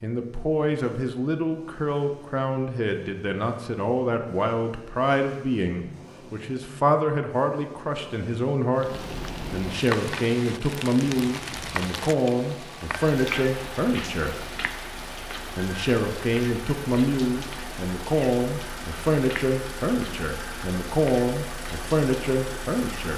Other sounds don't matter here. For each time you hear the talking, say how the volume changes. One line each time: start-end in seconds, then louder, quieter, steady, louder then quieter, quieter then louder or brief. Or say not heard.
0.0-14.4 steady
15.6-23.1 steady.